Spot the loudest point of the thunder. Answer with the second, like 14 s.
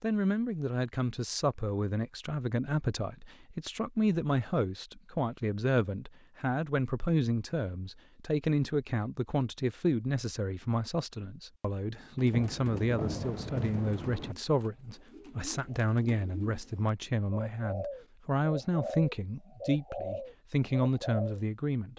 13 s.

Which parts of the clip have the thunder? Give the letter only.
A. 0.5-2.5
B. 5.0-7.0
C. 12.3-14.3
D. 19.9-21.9
C.